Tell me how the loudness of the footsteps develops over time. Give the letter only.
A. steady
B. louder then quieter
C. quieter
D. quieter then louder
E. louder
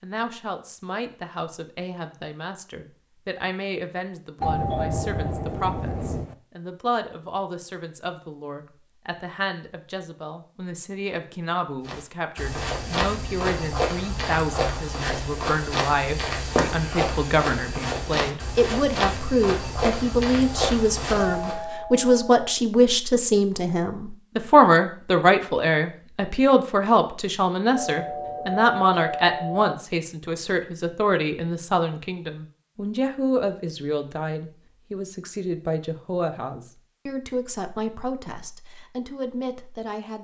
A.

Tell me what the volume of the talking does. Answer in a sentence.
The volume of the talking goes up, then down.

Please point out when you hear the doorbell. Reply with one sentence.
The doorbell can be heard from 4.4 to 6.3 s, from 21.1 to 22.5 s and from 27.8 to 29.8 s.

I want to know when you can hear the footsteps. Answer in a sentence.
The footsteps can be heard from 11.8 to 21.6 s.